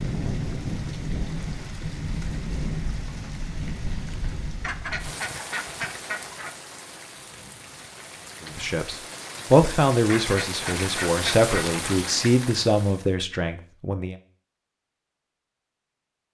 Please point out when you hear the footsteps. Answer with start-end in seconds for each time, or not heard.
not heard.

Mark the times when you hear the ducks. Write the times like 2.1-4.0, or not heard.
4.6-6.5, 10.1-11.8.